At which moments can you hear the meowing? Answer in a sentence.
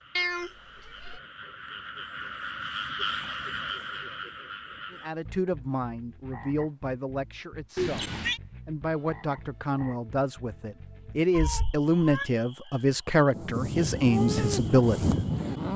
You can hear the meowing from 0.1 to 1.2 s, from 7.8 to 8.4 s and from 11.3 to 12.3 s.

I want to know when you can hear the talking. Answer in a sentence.
You can hear the talking from 4.9 to 15.2 s.